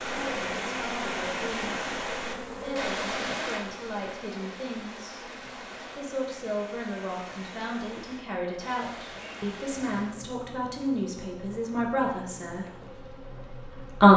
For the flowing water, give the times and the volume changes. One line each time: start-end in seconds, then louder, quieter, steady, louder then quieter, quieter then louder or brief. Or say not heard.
0.0-10.2 quieter.